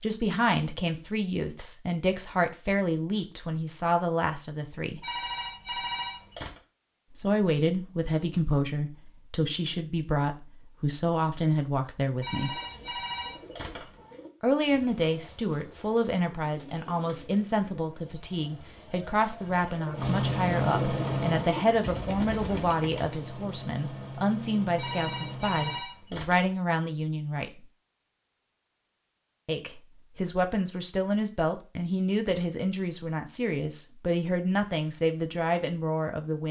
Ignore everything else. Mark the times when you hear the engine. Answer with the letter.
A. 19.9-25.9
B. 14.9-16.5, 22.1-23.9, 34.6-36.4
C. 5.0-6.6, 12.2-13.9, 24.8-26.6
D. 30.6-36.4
A.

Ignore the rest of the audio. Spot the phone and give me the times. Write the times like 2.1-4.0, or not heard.
5.0-6.6, 12.2-13.9, 24.8-26.6.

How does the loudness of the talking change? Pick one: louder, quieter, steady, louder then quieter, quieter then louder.
steady.